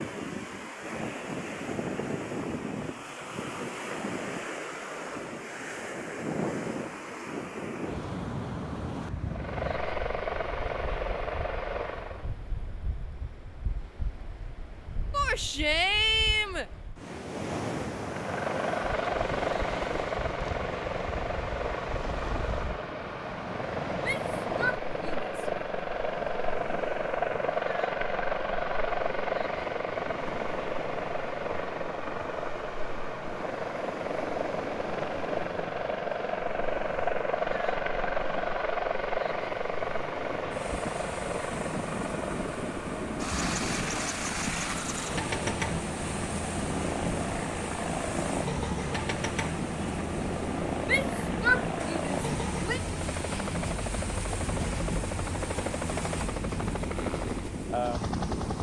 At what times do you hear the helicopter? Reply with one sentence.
You can hear the helicopter from 9.2 to 12.3 s and from 17.9 to 58.5 s.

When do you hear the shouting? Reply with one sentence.
You can hear the shouting from 15.1 to 16.6 s, from 24.0 to 25.4 s and from 50.9 to 52.8 s.